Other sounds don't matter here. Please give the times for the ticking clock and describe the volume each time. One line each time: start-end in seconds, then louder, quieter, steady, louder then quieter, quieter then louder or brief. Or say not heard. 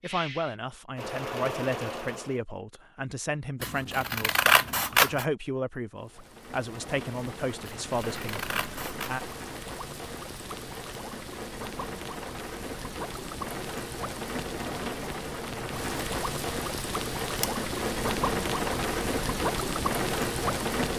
not heard.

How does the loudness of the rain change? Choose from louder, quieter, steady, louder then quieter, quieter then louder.
louder.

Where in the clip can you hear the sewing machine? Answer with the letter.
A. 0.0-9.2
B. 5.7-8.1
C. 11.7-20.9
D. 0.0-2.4
D.